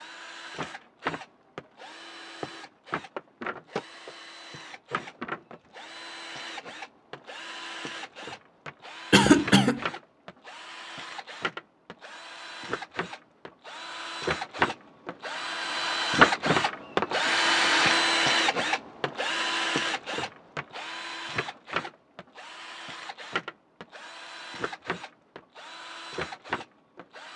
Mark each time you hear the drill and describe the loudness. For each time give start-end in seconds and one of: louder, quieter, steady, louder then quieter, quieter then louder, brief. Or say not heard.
0.0-27.3 louder then quieter.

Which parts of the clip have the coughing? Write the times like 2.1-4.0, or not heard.
9.1-9.8.